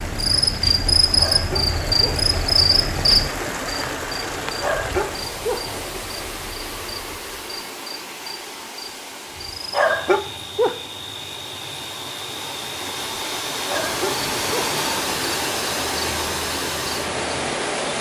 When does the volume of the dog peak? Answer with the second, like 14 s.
10 s.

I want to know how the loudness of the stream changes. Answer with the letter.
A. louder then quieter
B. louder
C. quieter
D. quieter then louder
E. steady
D.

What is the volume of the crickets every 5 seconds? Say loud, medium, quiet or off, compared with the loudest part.
loud, quiet, quiet, quiet.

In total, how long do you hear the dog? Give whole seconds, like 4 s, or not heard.
4 s.